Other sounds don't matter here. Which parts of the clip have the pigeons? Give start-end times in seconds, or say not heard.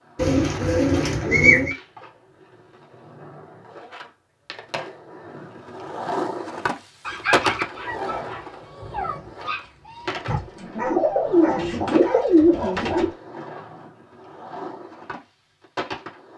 0.1-1.8, 10.2-13.1.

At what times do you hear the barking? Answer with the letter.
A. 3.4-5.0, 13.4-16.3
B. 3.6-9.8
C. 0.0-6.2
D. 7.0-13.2
D.